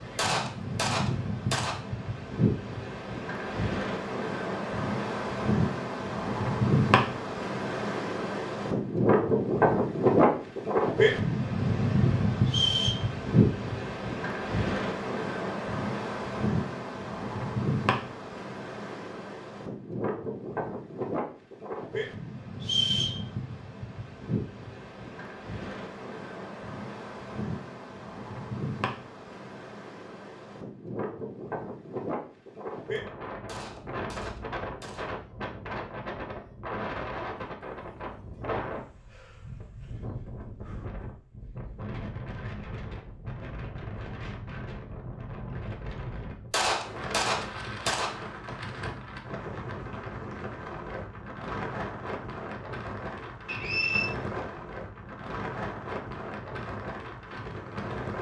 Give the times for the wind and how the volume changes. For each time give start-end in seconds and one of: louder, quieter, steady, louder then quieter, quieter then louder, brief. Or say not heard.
0.0-58.1 quieter.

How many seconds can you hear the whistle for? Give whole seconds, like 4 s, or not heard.
2 s.